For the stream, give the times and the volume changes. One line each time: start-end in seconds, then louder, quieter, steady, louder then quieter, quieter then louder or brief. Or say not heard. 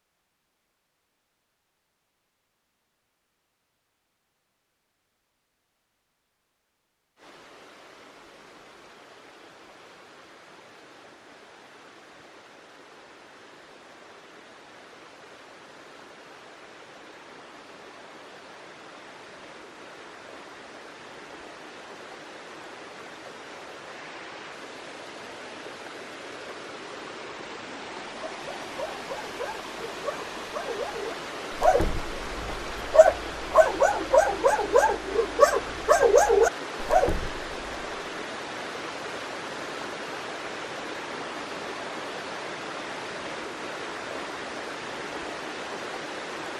7.2-46.5 louder.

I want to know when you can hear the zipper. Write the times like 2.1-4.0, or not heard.
not heard.